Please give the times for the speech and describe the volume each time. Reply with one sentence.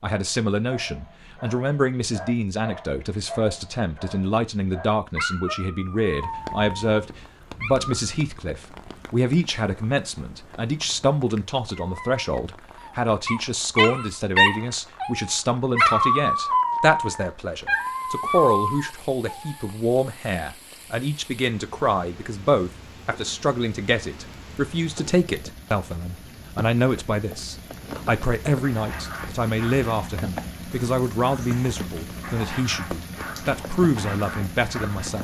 The speech can be heard from 0.0 to 35.1 s, at a steady volume.